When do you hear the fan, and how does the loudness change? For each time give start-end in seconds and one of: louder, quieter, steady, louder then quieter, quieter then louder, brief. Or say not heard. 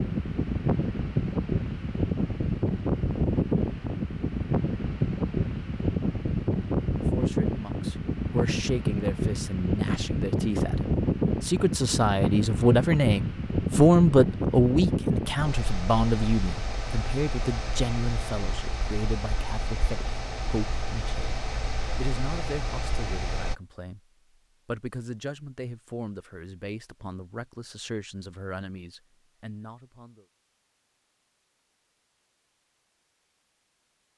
0.0-23.6 quieter.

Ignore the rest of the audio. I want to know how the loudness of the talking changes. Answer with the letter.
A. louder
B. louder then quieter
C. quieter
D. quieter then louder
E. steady
B.